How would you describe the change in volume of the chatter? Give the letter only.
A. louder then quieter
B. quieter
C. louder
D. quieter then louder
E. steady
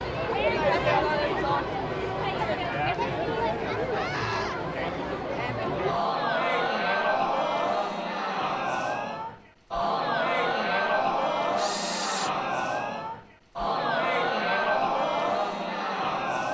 E.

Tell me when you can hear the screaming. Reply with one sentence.
You can hear the screaming from 3.9 to 4.5 s.